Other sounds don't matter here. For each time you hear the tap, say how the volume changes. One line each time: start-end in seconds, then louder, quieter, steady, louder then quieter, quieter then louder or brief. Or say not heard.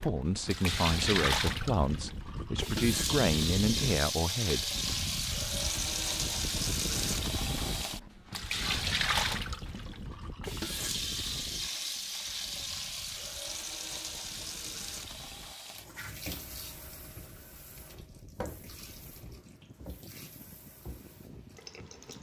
0.0-22.1 quieter.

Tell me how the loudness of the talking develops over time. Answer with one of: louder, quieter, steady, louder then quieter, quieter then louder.
quieter then louder.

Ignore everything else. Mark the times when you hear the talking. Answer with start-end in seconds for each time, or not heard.
0.0-4.7.